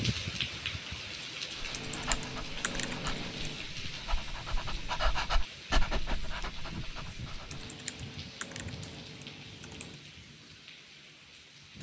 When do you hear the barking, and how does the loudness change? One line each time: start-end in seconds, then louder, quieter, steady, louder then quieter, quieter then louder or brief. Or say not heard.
1.6-7.7 louder then quieter.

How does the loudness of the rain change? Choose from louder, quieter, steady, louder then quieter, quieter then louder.
quieter.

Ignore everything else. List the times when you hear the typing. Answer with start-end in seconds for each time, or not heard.
1.7-3.6, 7.5-10.0.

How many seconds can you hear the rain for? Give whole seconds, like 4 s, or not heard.
12 s.